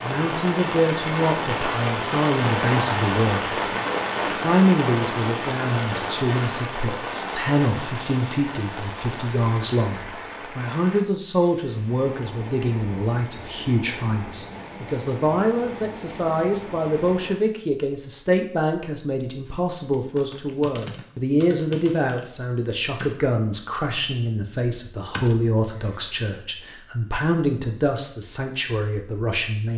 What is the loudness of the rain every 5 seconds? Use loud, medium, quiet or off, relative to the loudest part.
loud, medium, quiet, quiet, off, off.